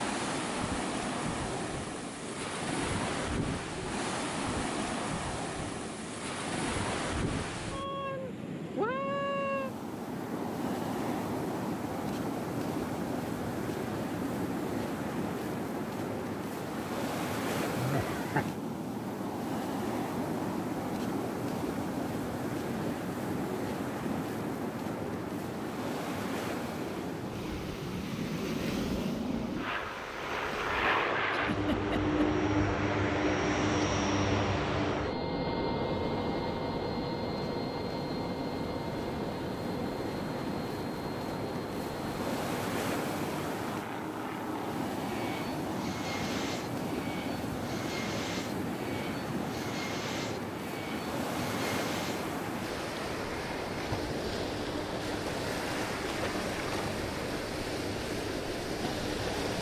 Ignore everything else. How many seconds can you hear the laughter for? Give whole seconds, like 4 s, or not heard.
2 s.